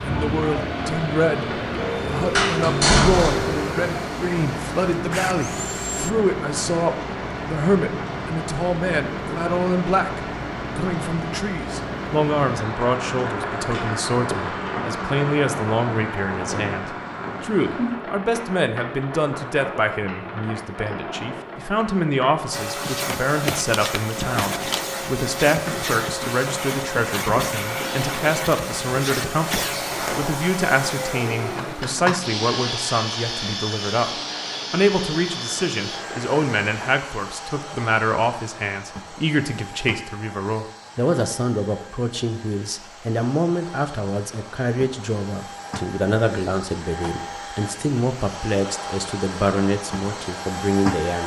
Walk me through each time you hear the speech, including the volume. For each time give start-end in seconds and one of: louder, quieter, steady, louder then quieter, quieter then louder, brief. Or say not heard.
0.0-51.2 steady.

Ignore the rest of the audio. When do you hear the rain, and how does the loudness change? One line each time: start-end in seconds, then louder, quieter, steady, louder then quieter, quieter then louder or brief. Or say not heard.
0.0-36.9 quieter.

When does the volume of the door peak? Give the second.
3 s.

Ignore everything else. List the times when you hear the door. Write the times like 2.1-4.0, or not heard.
2.4-3.5, 29.9-30.4.